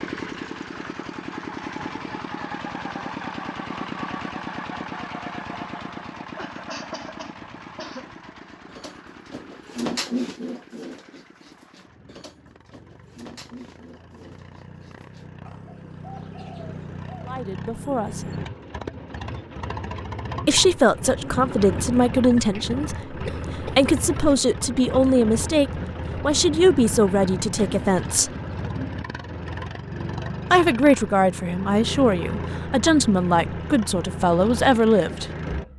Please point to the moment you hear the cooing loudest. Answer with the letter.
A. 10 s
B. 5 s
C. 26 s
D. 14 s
A.